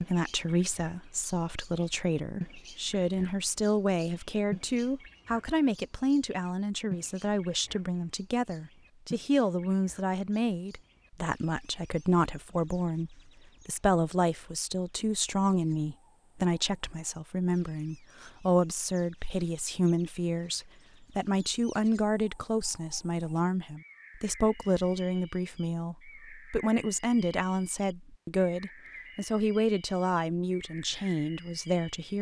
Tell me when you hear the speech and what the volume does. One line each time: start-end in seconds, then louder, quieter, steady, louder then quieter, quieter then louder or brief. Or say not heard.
0.0-32.1 steady.